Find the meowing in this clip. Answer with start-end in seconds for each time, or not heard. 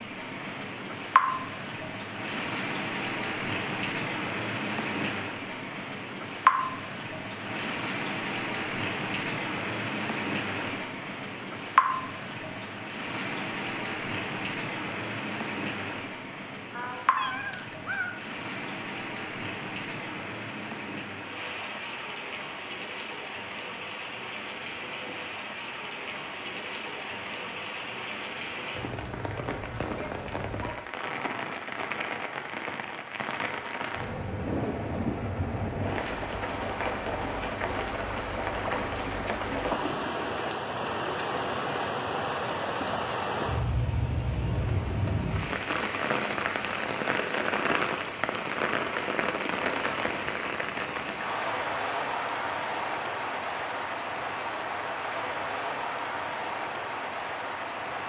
16.7-18.1.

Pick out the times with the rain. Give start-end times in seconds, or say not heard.
0.0-58.0.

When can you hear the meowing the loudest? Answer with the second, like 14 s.
18 s.